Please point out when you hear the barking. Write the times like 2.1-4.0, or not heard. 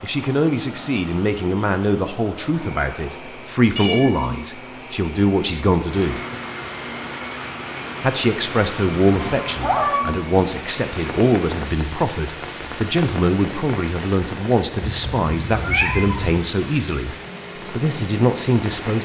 not heard.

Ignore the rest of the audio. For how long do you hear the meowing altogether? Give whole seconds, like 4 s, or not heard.
3 s.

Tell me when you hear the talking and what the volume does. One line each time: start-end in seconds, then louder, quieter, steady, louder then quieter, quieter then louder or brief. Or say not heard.
0.0-6.2 steady
8.0-19.0 steady.